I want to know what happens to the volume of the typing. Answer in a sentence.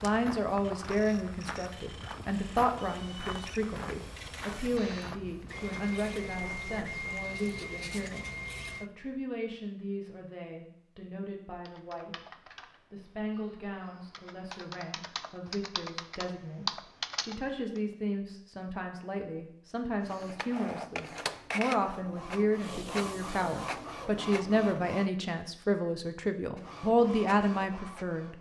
The loudness of the typing goes down, then up.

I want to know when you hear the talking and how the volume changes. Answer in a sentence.
The talking can be heard from 0.0 to 28.3 s, getting quieter then louder.